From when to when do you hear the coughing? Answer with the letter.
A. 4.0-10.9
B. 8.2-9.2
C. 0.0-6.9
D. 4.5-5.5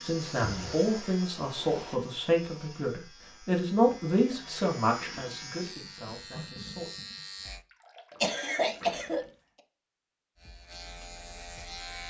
B.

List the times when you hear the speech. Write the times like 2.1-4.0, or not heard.
0.0-6.9.